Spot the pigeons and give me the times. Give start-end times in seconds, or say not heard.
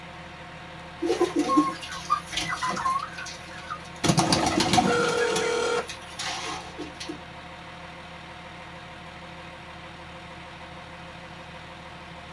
1.0-7.2.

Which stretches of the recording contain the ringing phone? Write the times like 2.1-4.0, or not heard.
4.2-5.8.